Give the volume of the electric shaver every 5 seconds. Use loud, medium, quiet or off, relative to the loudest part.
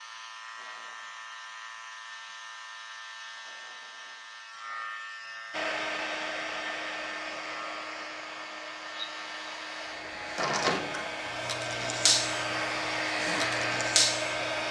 medium, medium, loud.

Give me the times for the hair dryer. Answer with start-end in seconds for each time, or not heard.
5.5-14.6.